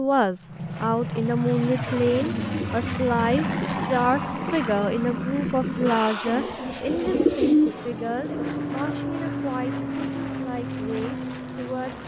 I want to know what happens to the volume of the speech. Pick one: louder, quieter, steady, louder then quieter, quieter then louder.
quieter.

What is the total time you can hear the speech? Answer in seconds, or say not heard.
12 s.